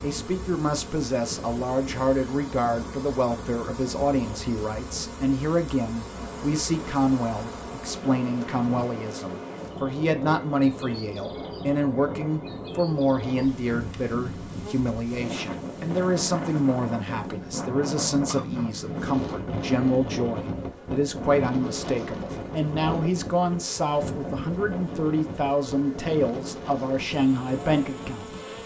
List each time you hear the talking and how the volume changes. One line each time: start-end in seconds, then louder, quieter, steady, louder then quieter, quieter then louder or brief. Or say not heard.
0.0-28.3 steady.